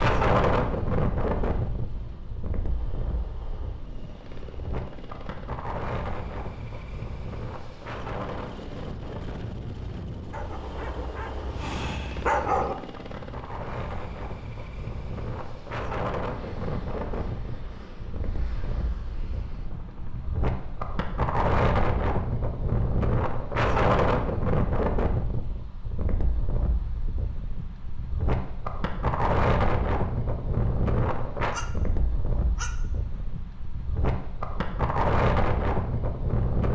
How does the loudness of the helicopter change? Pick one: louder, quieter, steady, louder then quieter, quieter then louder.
louder then quieter.